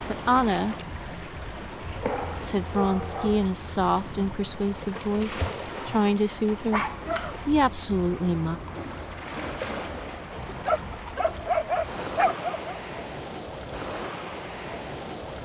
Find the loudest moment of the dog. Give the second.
12 s.